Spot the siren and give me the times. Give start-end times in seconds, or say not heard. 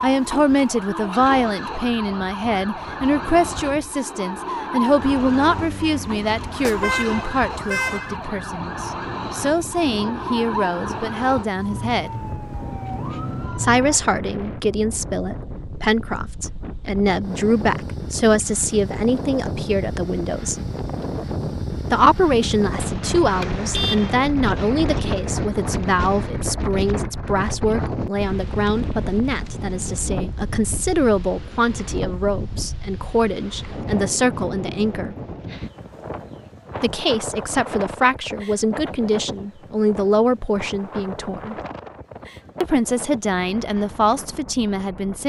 0.0-14.0.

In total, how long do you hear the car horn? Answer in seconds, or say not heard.
3 s.